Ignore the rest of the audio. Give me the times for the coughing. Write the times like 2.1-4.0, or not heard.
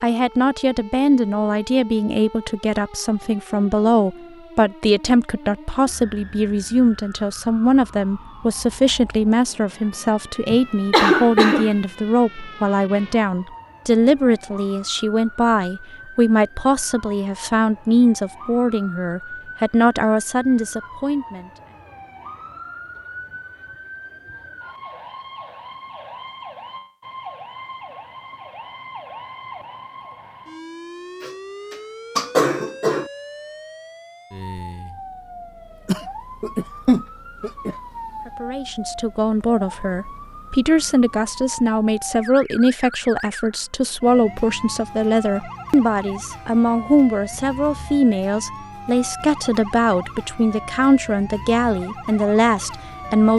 10.5-11.8, 31.2-33.0, 35.9-37.8.